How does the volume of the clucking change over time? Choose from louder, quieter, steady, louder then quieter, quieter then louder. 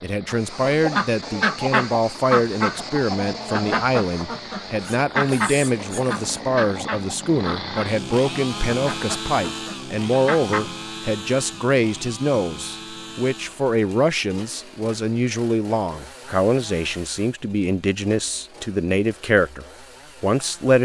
quieter.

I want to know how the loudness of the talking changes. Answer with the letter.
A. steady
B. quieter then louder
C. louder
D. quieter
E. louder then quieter
A.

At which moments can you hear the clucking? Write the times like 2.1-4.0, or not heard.
0.2-10.8.